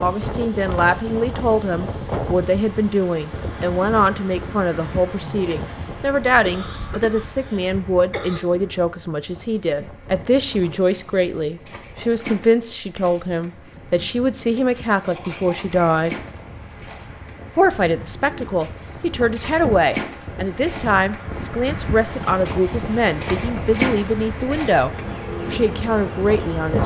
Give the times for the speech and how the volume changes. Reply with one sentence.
You can hear the speech from 0.0 to 16.1 s, at a steady volume; and from 17.6 to 26.8 s, at a steady volume.